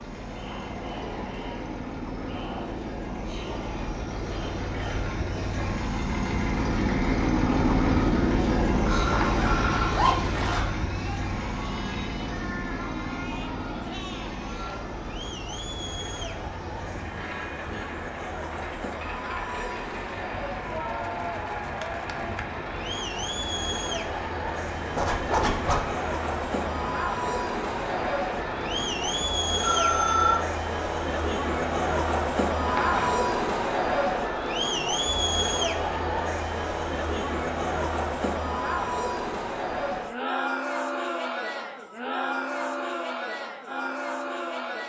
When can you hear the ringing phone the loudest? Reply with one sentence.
The loudest moment of the ringing phone is at 30 seconds.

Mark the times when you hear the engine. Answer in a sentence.
You can hear the engine from 0.0 to 29.2 s.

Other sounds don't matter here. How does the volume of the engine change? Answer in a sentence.
The loudness of the engine goes up, then down.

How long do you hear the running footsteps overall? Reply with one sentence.
You can't hear the running footsteps here.